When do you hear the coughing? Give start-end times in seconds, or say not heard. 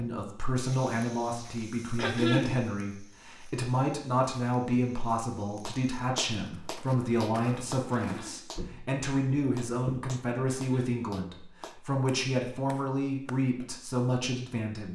1.9-2.5, 7.9-8.4, 10.4-11.0.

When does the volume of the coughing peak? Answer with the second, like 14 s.
2 s.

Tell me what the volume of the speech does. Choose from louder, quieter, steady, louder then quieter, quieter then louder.
steady.